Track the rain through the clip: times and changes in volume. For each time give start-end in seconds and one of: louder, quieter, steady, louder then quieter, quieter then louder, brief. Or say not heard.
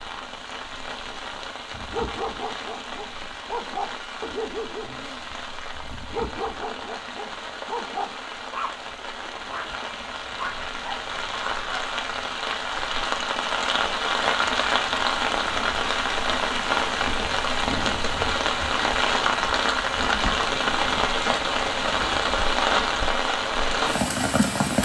0.0-24.8 louder.